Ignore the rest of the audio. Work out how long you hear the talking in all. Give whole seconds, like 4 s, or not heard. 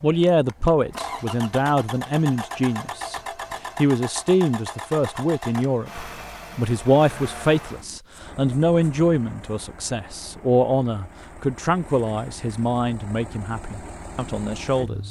15 s.